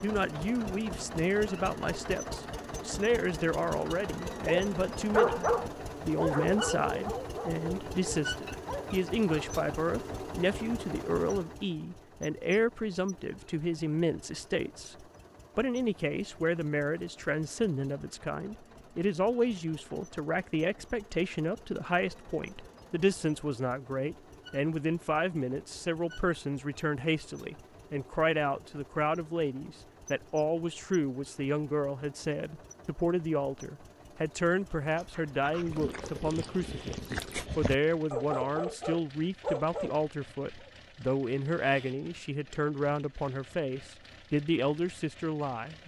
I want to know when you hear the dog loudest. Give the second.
5 s.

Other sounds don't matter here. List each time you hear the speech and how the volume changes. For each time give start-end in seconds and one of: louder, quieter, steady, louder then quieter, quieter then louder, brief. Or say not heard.
0.0-45.8 steady.